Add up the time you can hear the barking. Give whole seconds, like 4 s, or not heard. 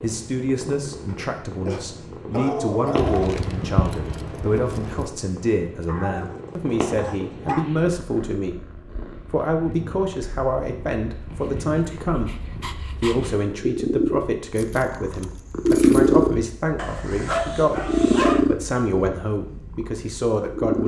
7 s.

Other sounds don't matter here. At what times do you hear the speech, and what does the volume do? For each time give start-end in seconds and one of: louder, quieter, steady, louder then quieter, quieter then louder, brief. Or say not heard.
0.0-20.8 steady.